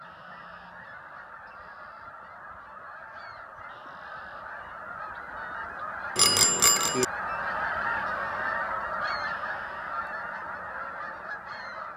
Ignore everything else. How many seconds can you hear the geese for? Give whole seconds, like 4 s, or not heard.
12 s.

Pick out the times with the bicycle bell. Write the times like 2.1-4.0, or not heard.
6.2-7.0.